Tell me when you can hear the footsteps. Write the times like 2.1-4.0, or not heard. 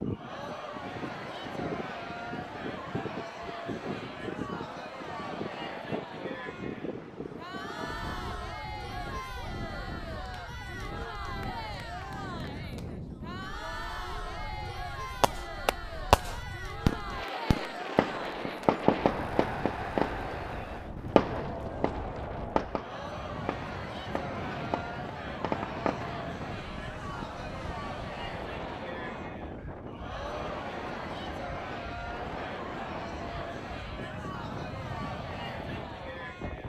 not heard.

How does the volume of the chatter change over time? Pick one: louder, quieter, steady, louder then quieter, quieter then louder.
steady.